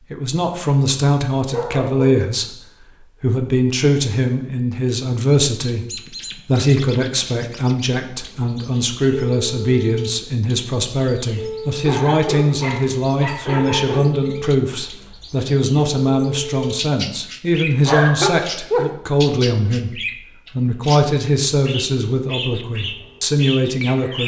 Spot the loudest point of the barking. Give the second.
18 s.